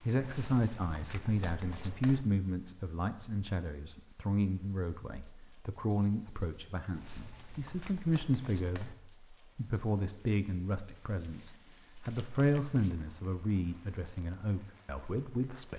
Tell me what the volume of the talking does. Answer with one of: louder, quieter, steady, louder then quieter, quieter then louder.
steady.